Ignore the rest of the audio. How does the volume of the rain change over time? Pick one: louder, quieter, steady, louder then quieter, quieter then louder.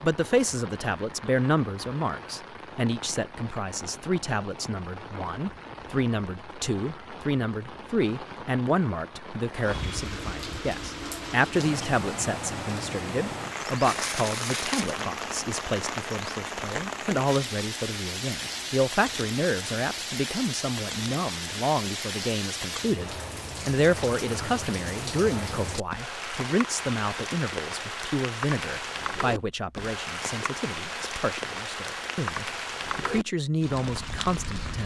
louder.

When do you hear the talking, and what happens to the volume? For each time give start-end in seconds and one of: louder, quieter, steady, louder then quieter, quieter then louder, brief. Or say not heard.
0.0-34.8 steady.